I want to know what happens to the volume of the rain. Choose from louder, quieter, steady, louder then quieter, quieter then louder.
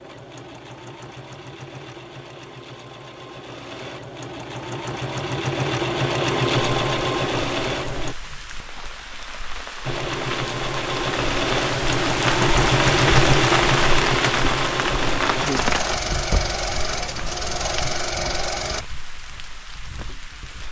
louder then quieter.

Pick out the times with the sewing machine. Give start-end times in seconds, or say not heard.
0.0-8.2, 9.8-18.9.